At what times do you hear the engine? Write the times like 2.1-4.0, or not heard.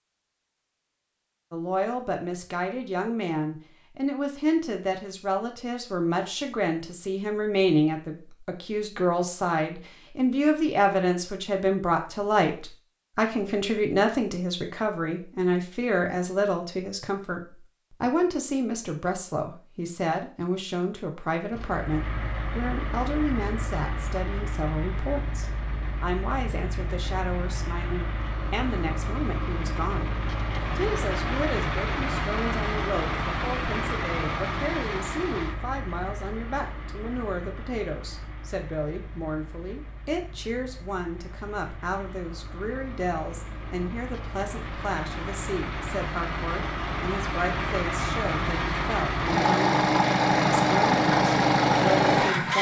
21.5-52.5.